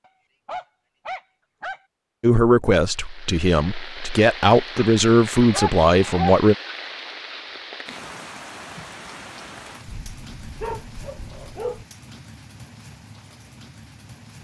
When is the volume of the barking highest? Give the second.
6 s.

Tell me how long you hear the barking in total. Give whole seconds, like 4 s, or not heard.
5 s.